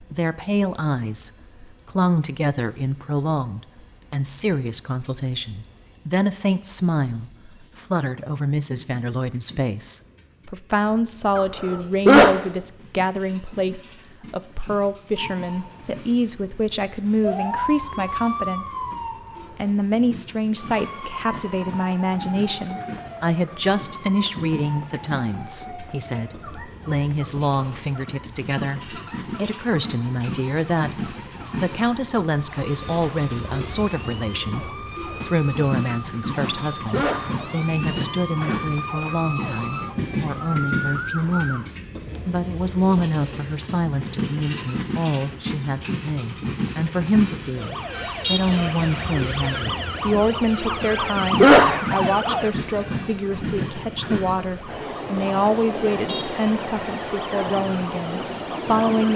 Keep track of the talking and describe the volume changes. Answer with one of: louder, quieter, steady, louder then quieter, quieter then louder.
steady.